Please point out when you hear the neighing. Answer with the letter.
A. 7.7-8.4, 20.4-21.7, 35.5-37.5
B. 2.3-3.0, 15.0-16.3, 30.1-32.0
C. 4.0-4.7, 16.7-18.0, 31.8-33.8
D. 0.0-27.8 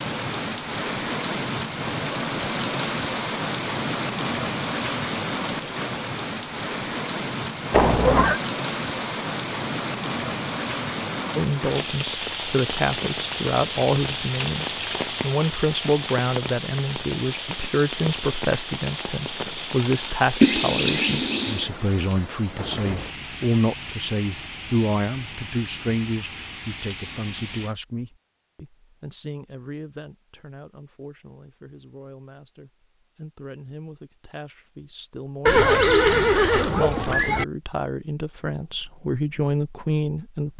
A.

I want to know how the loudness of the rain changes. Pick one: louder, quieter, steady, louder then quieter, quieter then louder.
quieter.